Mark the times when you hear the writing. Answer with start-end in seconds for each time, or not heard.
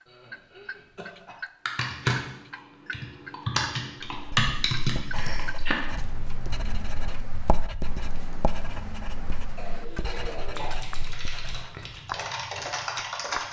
4.0-11.8.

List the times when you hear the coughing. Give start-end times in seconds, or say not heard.
0.1-1.4, 5.1-5.5, 9.6-10.8.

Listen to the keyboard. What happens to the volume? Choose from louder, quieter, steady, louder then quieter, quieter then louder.
quieter then louder.